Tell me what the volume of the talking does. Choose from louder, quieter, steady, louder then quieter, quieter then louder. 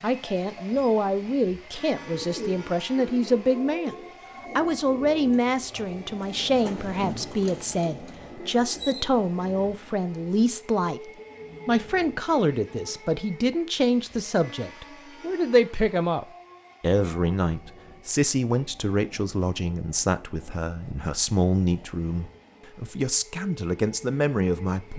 steady.